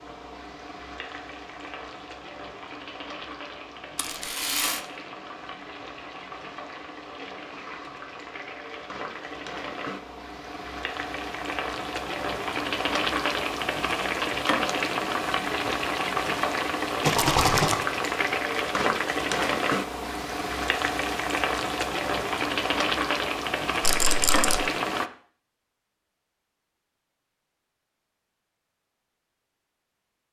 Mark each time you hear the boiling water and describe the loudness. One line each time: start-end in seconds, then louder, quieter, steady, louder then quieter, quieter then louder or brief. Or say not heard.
0.0-25.1 louder.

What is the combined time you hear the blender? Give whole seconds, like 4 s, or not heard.
not heard.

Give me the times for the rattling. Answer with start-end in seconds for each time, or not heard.
4.0-4.8, 17.1-17.8, 23.8-24.6.